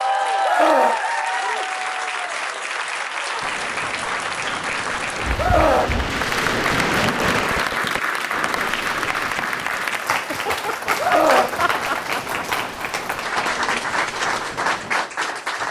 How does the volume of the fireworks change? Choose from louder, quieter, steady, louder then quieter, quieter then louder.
louder then quieter.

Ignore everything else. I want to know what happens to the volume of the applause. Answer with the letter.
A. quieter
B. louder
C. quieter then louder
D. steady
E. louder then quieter
D.